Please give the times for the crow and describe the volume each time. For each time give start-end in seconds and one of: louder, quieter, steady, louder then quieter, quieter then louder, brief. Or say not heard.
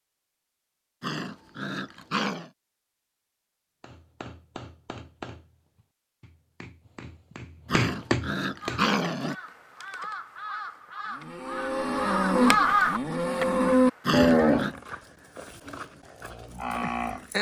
8.6-14.6 louder then quieter.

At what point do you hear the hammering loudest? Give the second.
8 s.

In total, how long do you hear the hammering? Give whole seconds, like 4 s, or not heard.
5 s.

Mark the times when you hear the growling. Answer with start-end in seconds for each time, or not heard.
1.0-2.5, 7.7-9.3, 14.1-14.8.